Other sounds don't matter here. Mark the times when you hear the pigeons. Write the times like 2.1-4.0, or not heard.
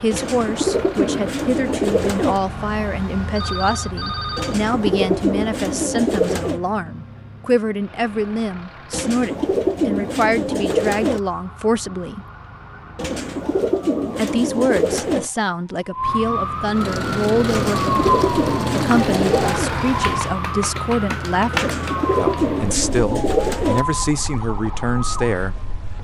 0.1-2.4, 4.3-6.6, 8.9-11.2, 12.9-15.3, 17.4-19.8, 21.5-23.9.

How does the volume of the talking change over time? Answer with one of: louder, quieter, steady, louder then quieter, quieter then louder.
steady.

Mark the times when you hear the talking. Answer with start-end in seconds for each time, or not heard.
0.0-12.2, 14.2-17.9, 18.7-25.6.